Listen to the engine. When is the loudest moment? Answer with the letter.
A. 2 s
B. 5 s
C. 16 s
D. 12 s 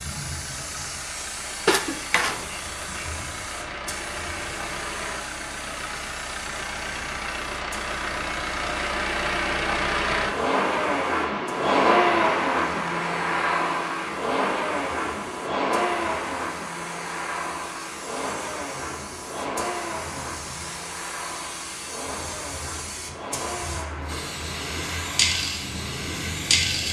D.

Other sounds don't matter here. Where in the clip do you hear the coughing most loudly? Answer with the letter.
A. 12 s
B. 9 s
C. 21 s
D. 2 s
D.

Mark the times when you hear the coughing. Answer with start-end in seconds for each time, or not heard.
1.6-3.1.